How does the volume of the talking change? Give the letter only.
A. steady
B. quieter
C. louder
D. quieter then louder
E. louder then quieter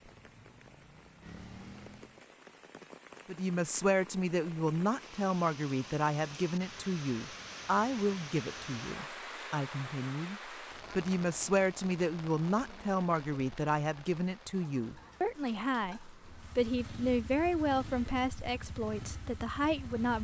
A.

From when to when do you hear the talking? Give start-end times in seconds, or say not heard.
3.2-20.1.